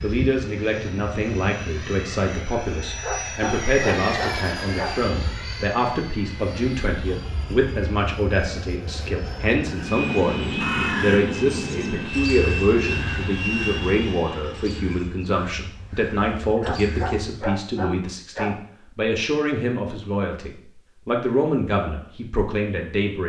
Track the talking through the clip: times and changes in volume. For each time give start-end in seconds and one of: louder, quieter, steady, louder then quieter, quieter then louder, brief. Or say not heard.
0.0-23.2 steady.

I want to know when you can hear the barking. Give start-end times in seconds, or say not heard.
3.0-5.0, 16.6-18.6.